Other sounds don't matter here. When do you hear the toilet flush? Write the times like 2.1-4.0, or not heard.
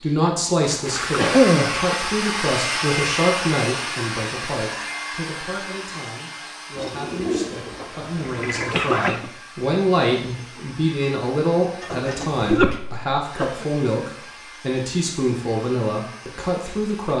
0.8-1.2, 6.8-9.2, 11.8-12.7.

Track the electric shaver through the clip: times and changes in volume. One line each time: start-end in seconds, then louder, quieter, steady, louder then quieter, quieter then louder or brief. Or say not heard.
not heard.